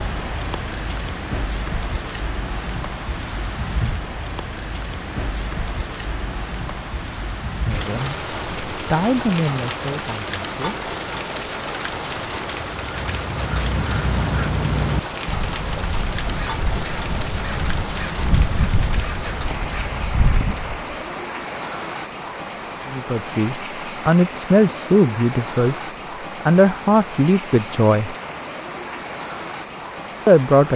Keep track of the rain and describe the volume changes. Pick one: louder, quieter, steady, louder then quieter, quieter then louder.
steady.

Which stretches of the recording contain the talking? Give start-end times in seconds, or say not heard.
7.7-10.9, 22.9-28.1, 30.2-30.7.